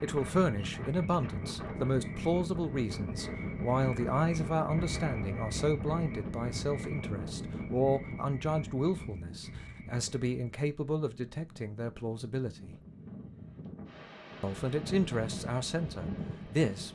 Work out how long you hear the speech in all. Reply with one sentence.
You can hear the speech for 15 seconds altogether.